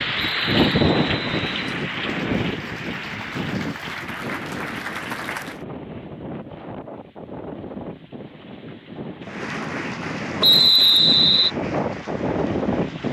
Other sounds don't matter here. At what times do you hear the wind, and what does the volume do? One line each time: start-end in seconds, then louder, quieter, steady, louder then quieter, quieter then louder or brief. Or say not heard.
0.0-13.0 quieter then louder.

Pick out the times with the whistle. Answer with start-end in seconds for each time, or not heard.
0.1-1.9, 10.4-11.5.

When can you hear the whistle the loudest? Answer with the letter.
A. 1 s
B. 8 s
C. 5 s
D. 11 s
D.